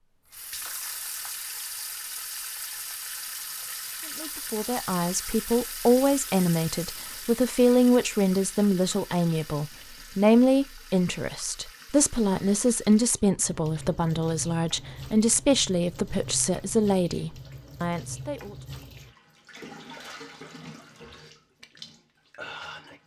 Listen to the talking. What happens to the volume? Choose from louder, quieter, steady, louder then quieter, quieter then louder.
steady.